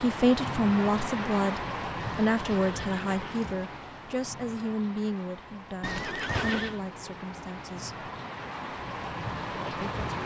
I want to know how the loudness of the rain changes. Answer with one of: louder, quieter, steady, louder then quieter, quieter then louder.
quieter then louder.